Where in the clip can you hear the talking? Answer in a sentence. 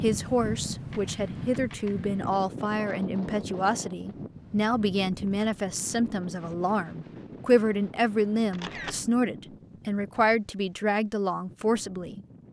The talking can be heard from 0.0 to 12.4 s.